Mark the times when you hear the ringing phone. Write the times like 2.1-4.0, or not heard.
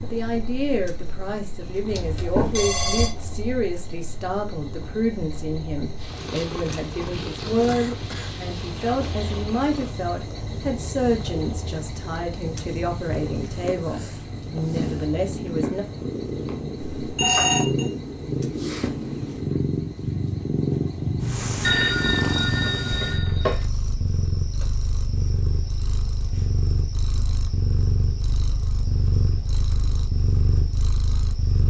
1.9-3.1, 16.8-17.9, 21.6-23.6.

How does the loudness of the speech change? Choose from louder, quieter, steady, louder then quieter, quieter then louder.
steady.